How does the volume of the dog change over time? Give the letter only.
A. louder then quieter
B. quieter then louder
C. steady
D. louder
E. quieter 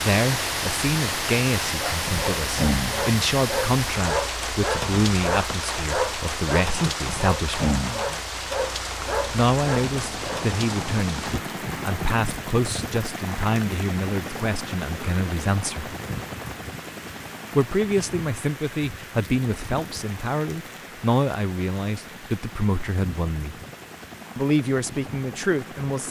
C.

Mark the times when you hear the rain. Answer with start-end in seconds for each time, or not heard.
0.0-26.0.